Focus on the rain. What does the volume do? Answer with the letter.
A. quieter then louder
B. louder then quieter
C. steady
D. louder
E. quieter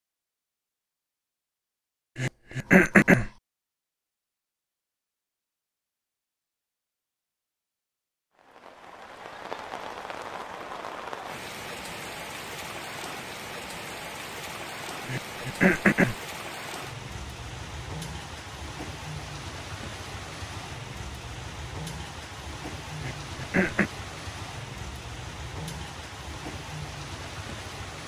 C.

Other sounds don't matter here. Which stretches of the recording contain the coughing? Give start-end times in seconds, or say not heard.
2.1-3.3, 15.1-16.1, 23.0-23.9.